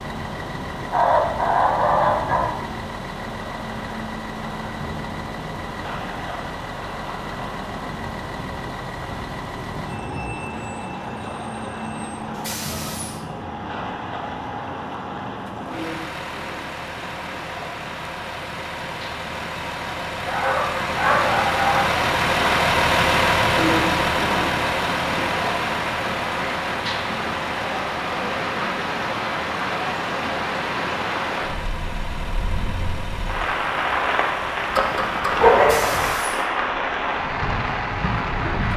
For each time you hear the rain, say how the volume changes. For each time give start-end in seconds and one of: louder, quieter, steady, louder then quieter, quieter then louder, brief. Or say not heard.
0.0-38.7 louder.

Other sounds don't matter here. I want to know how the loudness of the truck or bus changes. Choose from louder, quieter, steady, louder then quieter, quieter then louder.
louder then quieter.